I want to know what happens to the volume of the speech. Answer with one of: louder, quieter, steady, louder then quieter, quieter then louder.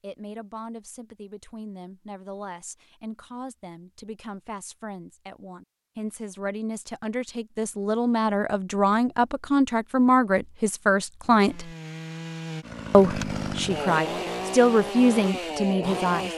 louder.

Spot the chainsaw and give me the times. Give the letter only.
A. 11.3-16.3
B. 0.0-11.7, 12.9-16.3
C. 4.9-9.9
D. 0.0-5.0
A.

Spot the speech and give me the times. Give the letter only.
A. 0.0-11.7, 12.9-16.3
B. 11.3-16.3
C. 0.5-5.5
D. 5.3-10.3
A.